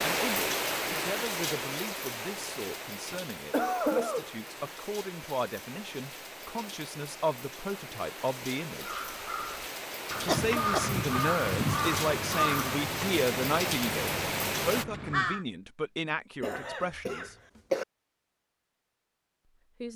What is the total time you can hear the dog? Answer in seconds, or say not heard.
not heard.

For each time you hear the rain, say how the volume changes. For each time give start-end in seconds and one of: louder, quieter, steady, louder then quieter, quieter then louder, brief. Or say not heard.
0.0-14.8 quieter then louder.